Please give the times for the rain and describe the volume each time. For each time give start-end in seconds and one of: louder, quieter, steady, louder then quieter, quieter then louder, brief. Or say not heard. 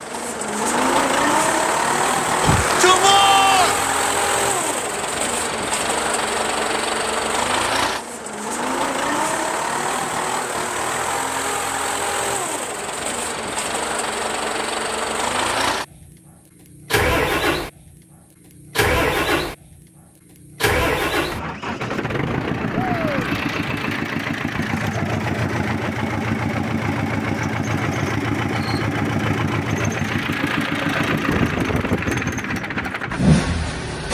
not heard.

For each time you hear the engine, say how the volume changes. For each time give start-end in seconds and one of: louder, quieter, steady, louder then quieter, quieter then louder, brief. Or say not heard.
0.0-34.0 steady.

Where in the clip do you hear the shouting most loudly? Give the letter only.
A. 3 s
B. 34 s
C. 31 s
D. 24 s
A.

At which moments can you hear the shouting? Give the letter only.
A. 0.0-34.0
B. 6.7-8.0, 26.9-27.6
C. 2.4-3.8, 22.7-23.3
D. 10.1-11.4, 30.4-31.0
C.